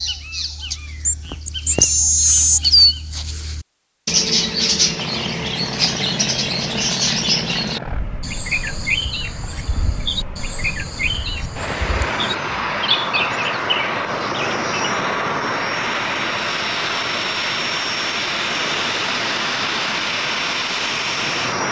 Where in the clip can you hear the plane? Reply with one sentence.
You can hear the plane from 5.0 to 21.6 s.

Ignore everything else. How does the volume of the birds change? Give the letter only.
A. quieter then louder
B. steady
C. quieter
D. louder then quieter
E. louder
C.